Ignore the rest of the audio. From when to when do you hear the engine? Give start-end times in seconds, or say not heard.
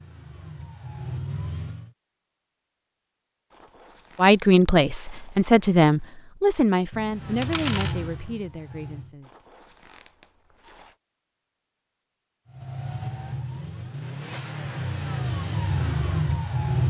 0.0-1.9, 7.1-9.2, 12.4-16.8.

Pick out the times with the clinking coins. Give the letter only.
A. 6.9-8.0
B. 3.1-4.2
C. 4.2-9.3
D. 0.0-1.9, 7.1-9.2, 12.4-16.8
A.